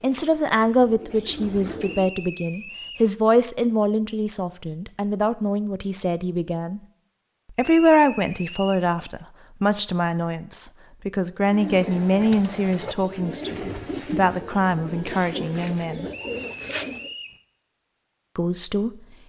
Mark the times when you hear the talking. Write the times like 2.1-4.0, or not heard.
0.0-6.8, 7.5-16.1, 18.4-18.9.